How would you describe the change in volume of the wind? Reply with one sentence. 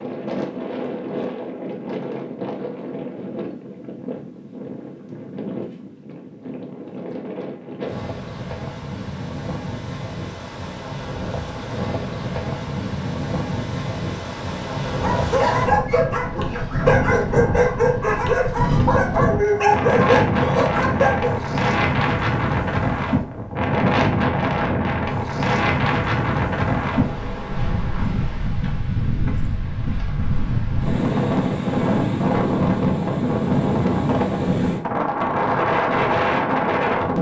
The loudness of the wind goes up.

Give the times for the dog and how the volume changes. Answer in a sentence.
You can hear the dog from 14.8 to 21.4 s, at a steady volume.